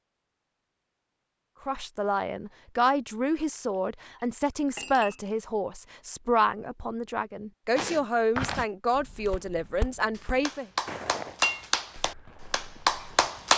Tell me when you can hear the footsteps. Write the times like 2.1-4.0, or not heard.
7.8-13.3.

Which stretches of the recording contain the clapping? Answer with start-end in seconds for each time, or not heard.
10.2-13.5.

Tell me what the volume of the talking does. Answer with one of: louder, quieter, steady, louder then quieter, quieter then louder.
steady.